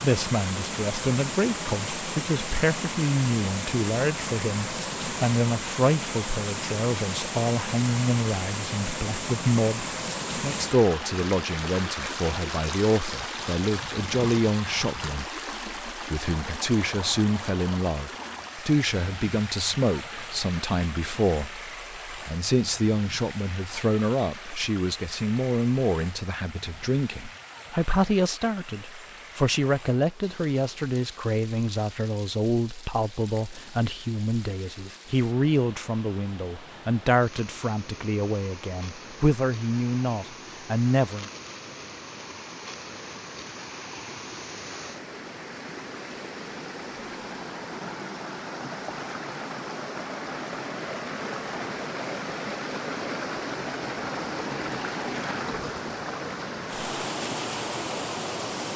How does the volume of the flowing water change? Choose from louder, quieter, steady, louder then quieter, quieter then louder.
quieter then louder.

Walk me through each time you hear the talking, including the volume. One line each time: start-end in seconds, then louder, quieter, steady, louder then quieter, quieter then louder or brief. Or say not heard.
0.0-41.3 steady.